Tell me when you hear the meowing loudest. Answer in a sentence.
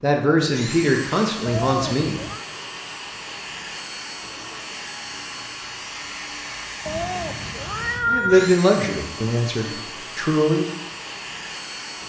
The volume of the meowing peaks at 8 seconds.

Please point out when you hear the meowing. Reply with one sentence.
The meowing can be heard from 1.4 to 2.5 s and from 6.8 to 8.5 s.